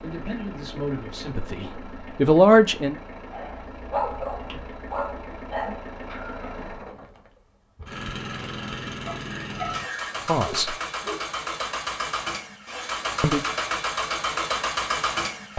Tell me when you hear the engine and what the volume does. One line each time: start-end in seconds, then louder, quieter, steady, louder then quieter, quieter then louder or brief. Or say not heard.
0.0-15.5 louder.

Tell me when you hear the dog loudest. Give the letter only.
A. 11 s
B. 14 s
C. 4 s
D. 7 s
C.